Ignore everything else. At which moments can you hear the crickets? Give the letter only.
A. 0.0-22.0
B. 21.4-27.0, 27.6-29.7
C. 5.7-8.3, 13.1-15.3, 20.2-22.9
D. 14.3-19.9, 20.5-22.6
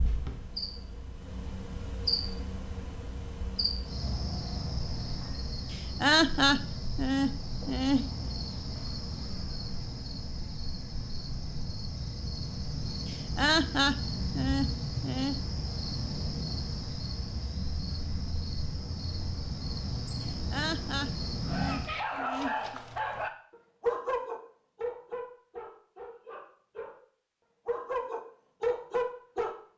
A.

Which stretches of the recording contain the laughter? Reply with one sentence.
You can hear the laughter from 5.7 to 8.3 s, from 13.1 to 15.3 s and from 20.2 to 22.9 s.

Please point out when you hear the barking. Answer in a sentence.
The barking can be heard from 21.4 to 27.0 s and from 27.6 to 29.7 s.